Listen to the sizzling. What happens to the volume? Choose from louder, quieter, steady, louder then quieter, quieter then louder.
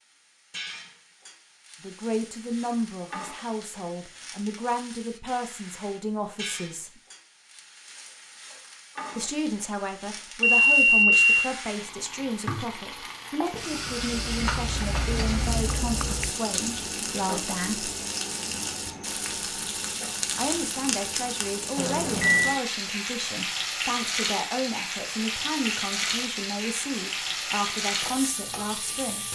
louder.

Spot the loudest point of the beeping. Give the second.
11 s.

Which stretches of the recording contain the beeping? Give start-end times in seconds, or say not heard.
10.4-11.3, 21.8-22.6.